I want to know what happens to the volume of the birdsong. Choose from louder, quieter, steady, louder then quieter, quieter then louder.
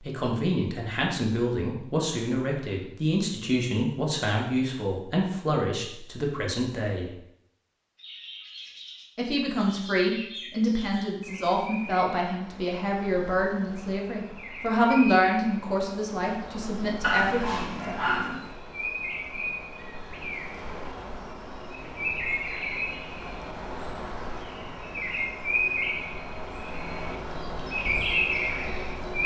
louder.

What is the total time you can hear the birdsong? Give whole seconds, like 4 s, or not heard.
21 s.